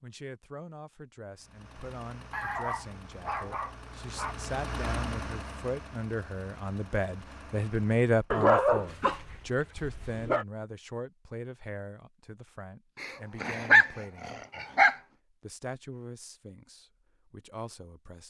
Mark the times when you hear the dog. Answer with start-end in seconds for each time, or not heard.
2.3-4.3, 8.3-10.4, 13.0-14.9.